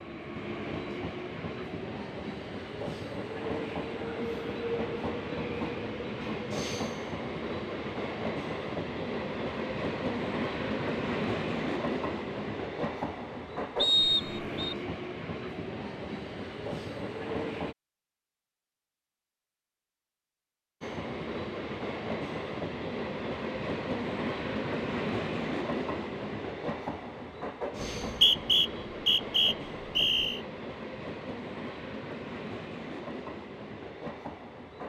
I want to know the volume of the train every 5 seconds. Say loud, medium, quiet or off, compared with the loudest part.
loud, loud, loud, loud, loud, loud, medium.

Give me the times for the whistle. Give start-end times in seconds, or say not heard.
13.8-14.8, 28.0-30.4.